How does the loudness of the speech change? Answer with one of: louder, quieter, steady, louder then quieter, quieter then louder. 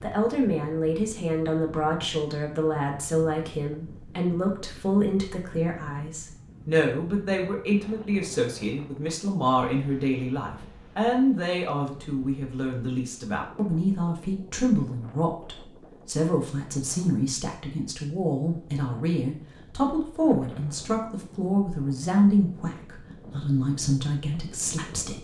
steady.